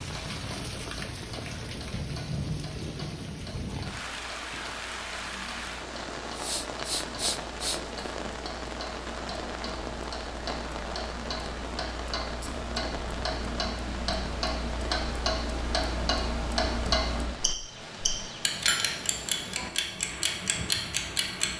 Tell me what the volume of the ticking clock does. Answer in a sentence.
The loudness of the ticking clock goes up.